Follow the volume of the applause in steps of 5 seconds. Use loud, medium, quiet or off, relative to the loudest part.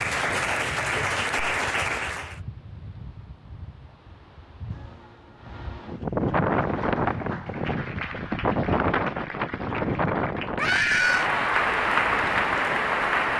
loud, quiet, loud.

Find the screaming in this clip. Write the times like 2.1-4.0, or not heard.
10.6-11.3.